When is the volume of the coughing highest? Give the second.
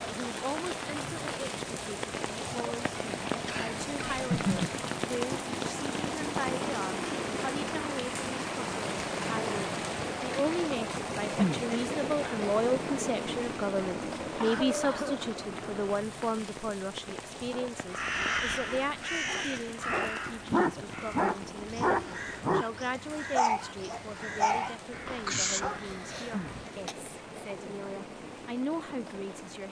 4 s.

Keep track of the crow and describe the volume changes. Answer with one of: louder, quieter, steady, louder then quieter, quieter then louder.
quieter.